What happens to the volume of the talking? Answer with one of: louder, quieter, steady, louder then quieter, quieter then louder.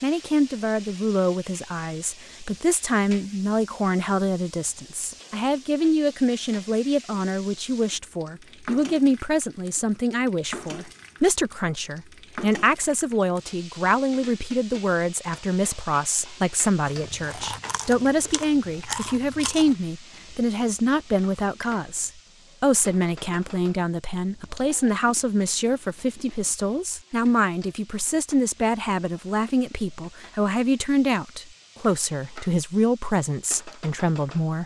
steady.